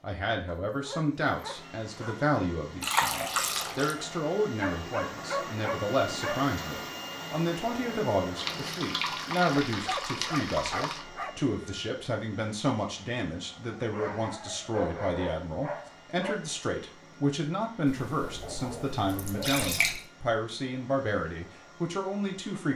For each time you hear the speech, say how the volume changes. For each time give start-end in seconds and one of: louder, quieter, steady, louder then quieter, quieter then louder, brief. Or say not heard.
0.0-22.7 steady.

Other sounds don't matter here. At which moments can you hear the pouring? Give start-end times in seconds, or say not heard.
2.8-4.0, 8.3-11.1, 17.9-20.1.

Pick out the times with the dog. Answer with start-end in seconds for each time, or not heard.
0.5-2.4, 4.6-6.5, 9.7-11.4, 13.9-16.4, 18.2-19.9.